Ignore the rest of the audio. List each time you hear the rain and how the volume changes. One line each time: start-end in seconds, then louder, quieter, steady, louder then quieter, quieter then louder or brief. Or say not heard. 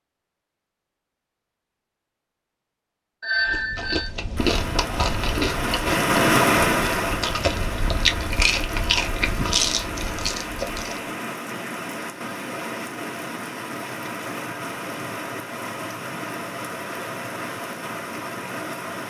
4.3-19.0 quieter.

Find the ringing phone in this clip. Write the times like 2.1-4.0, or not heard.
3.2-4.1.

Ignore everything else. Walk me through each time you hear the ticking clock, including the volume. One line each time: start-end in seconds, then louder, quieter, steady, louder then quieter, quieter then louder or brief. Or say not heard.
not heard.